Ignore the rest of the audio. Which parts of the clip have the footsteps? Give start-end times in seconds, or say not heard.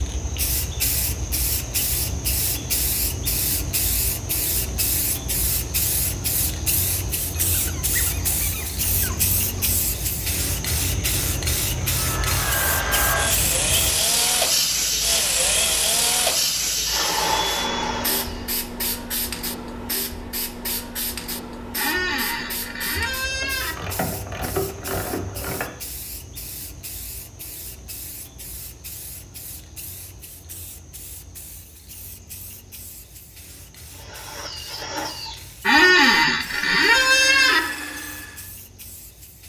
not heard.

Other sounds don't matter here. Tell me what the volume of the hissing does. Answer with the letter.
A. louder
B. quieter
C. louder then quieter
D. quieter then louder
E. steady
B.